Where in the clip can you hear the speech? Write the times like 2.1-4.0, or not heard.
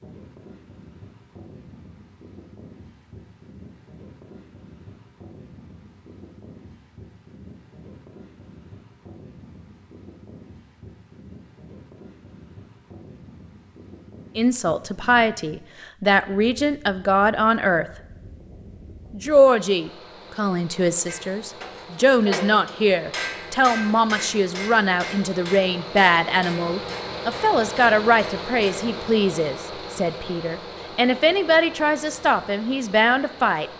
14.3-17.9, 19.1-33.7.